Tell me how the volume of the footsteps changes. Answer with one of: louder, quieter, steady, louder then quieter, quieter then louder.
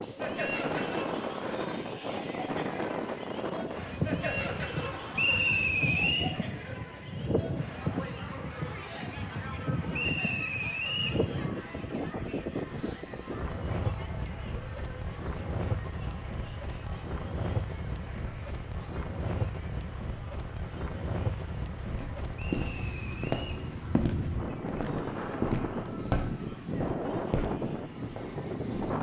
quieter.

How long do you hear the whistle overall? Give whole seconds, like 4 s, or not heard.
4 s.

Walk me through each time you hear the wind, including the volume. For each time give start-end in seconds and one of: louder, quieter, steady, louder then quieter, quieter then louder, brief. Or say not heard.
0.0-28.9 steady.